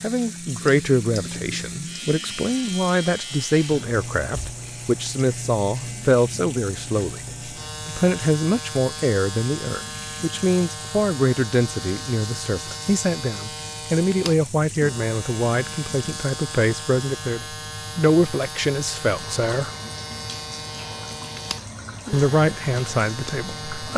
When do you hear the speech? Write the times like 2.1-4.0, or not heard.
0.0-7.2, 7.8-19.7, 22.1-23.9.